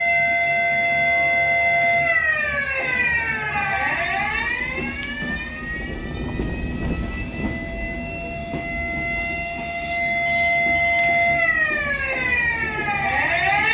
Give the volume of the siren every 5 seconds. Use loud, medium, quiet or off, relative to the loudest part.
loud, medium, loud.